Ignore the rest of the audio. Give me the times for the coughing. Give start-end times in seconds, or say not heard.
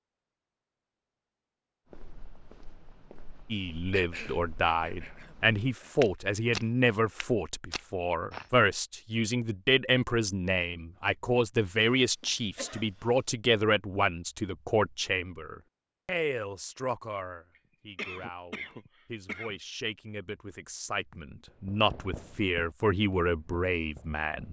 3.9-6.0, 11.8-13.1, 17.6-19.6.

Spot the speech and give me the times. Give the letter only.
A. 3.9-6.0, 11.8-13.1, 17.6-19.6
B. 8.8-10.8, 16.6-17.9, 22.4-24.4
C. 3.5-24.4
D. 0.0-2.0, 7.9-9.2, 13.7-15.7
C.